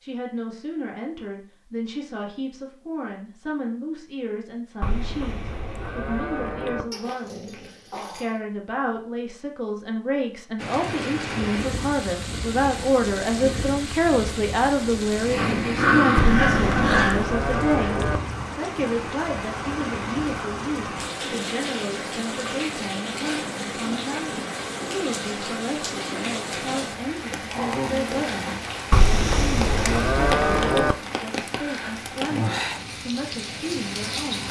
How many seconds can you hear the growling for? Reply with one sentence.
The growling can be heard for 5 seconds in total.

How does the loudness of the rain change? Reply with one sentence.
The volume of the rain stays about the same.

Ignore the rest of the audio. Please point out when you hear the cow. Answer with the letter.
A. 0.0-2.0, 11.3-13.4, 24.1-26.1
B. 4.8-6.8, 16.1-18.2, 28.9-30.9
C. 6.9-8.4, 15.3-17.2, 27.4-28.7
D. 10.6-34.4
B.